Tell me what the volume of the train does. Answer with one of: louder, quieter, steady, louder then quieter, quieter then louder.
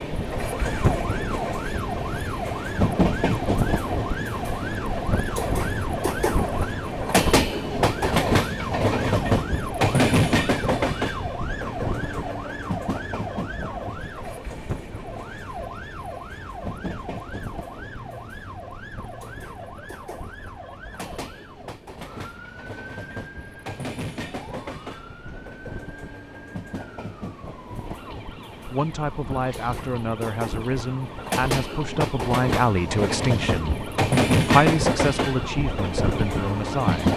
quieter then louder.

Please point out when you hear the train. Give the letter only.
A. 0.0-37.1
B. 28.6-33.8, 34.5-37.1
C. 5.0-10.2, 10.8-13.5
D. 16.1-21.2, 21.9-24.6
A.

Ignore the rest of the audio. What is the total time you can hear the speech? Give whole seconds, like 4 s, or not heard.
8 s.